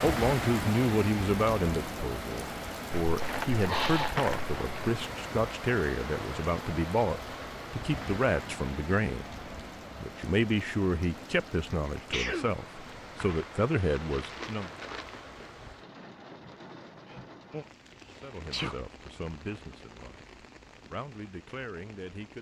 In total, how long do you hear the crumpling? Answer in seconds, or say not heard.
4 s.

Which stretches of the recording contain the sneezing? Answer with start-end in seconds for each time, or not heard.
3.6-4.2, 11.8-12.5, 17.1-18.9.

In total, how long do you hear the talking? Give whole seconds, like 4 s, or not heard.
18 s.